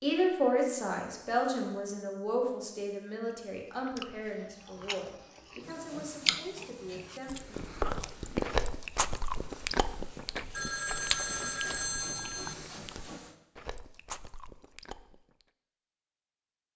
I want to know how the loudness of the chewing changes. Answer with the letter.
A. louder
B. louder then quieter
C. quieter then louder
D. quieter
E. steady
B.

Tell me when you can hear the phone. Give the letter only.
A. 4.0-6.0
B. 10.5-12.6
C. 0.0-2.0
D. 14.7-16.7
B.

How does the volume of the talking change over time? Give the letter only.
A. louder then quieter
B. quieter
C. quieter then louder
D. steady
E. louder
B.